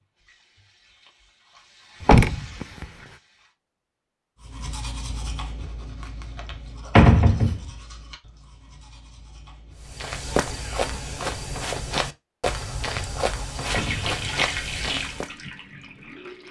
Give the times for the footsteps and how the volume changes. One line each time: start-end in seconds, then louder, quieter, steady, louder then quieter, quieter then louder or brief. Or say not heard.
9.8-15.3 steady.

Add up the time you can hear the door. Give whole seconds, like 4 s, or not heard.
2 s.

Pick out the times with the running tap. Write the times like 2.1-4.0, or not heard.
0.0-3.5, 13.6-16.4.